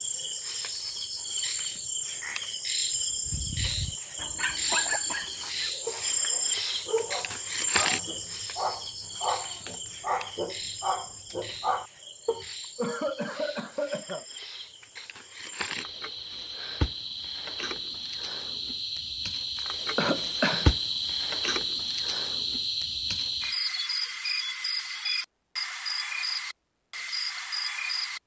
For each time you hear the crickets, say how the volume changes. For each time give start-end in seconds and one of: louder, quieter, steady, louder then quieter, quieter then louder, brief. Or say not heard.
0.0-28.2 quieter then louder.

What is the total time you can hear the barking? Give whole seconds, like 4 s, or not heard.
9 s.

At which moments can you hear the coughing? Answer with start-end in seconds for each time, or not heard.
4.7-5.4, 12.8-14.2, 19.9-20.7.